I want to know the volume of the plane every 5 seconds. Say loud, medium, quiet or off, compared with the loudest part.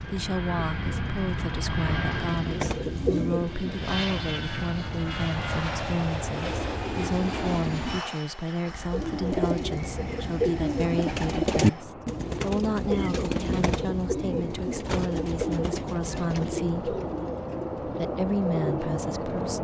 loud, loud, medium, loud.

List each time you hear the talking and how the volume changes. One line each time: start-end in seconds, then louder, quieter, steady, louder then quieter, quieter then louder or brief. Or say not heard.
0.0-16.9 steady
17.8-19.5 brief.